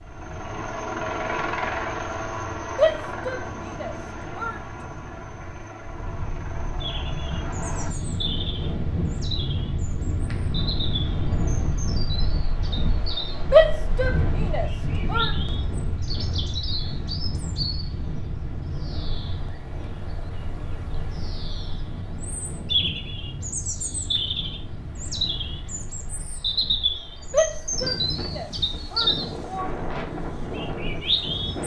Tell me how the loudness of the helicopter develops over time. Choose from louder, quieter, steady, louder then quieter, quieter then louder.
quieter.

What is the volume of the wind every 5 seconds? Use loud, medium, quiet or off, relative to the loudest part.
quiet, loud, loud, loud, medium, medium, loud.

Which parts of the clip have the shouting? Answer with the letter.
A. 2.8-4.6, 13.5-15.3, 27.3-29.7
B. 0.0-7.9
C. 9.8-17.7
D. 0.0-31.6
A.